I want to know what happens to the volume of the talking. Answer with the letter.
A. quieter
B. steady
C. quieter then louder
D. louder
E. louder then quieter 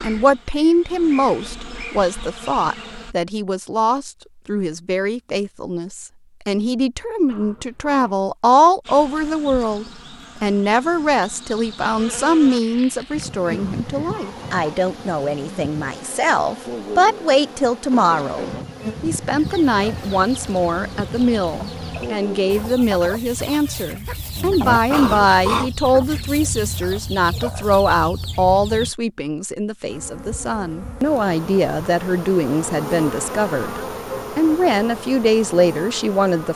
B.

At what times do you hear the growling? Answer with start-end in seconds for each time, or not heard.
7.2-8.2, 13.6-14.8, 24.9-25.7.